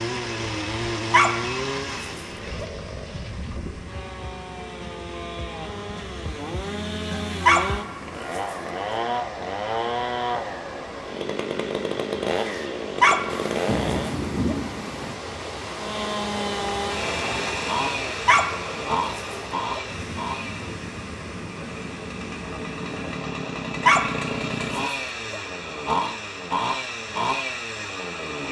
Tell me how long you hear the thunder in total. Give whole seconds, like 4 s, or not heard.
2 s.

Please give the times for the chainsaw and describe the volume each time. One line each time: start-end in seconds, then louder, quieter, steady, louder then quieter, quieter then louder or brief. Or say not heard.
0.0-14.2 quieter then louder
15.8-28.4 quieter then louder.